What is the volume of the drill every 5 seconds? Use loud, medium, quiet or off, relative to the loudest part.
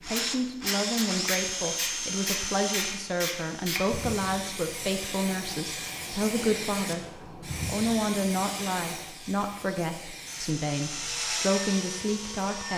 loud, off, loud.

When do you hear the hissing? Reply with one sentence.
The hissing can be heard from 0.0 to 12.7 s.